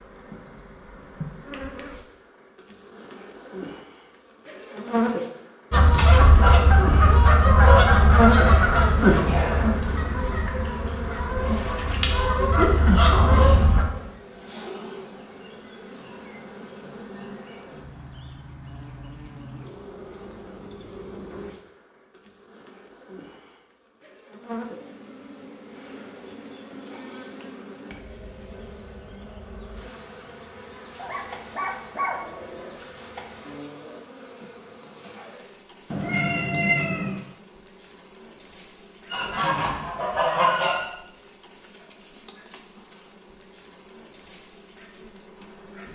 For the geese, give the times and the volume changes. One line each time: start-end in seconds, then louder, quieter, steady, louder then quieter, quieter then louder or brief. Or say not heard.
5.7-13.8 quieter then louder
39.1-40.9 brief.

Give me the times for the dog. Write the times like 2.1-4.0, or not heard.
30.9-32.9.